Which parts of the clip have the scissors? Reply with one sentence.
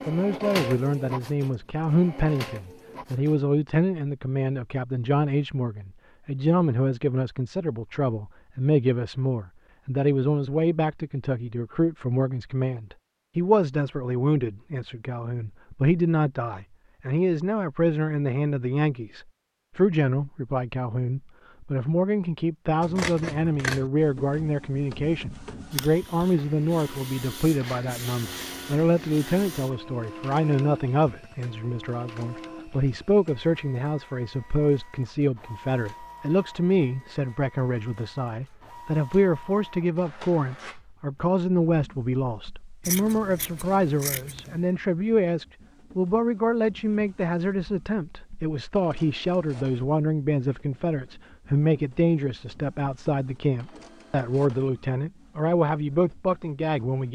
You can hear the scissors from 22.8 to 23.9 s and from 42.8 to 44.6 s.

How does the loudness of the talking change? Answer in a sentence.
The volume of the talking stays about the same.